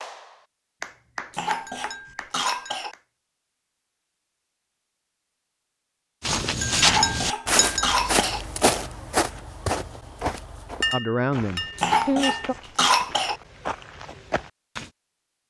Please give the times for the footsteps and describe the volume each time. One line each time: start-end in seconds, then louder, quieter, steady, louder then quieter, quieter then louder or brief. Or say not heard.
6.2-14.9 quieter.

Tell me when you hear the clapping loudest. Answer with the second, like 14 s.
1 s.